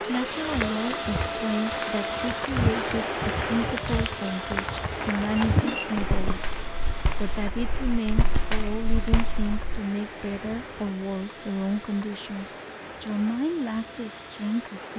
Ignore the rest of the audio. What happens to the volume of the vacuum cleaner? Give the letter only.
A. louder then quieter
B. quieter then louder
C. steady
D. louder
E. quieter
E.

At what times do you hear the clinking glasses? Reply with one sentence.
You can hear the clinking glasses from 5.5 to 6.5 s.